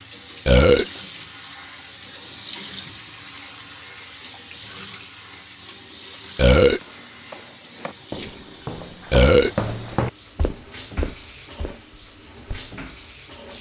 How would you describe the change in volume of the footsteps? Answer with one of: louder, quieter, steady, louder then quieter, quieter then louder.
louder then quieter.